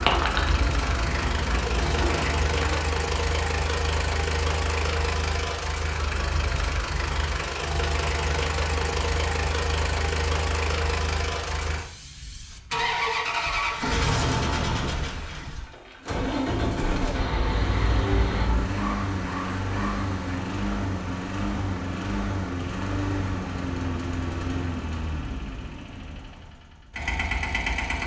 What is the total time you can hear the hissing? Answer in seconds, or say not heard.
6 s.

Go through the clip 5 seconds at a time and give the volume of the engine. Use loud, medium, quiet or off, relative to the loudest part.
loud, loud, loud, loud, loud, medium.